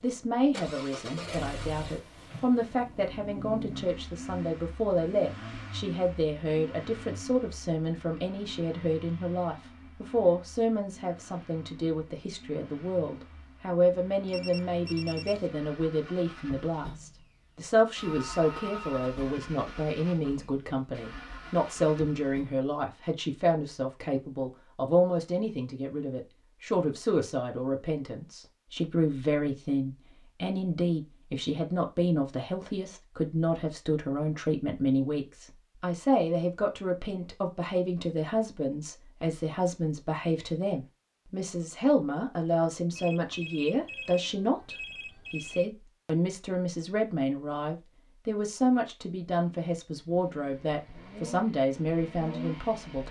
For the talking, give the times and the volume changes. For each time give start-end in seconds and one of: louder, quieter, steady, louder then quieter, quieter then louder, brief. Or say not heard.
0.0-53.0 steady.